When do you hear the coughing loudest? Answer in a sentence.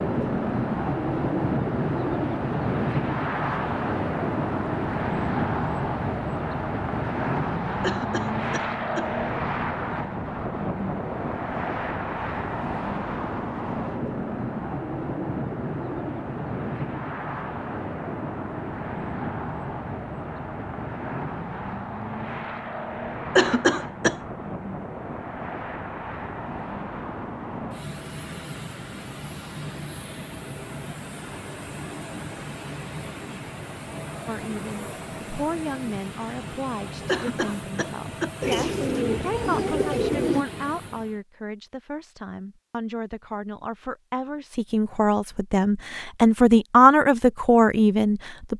The volume of the coughing peaks at 24 seconds.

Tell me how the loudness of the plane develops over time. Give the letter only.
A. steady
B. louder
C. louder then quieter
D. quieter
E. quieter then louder
D.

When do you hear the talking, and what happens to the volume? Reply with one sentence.
You can hear the talking from 34.2 to 48.5 s, getting louder.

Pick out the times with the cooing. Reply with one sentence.
You can hear the cooing from 38.4 to 40.5 s.